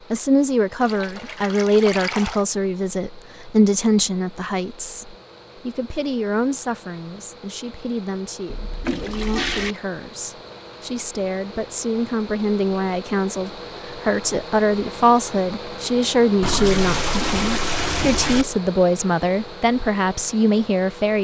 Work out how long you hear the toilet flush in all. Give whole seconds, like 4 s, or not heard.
5 s.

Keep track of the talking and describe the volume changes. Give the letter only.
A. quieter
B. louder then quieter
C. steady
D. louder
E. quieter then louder
E.